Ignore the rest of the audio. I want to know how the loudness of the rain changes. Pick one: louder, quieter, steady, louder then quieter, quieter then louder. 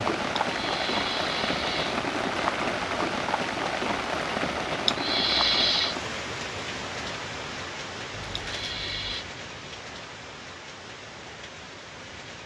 quieter.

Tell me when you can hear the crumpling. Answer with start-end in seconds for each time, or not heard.
8.1-9.2.